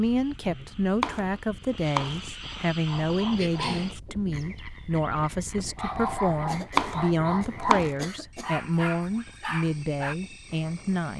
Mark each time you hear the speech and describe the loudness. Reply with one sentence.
You can hear the speech from 0.0 to 11.1 s, at a steady volume.